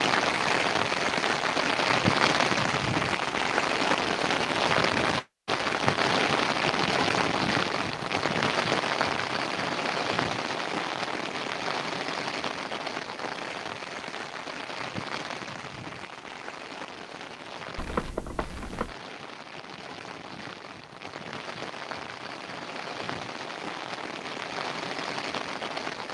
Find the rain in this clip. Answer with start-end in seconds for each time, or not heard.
0.0-26.0.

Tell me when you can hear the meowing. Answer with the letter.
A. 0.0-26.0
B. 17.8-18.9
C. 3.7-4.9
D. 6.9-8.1
B.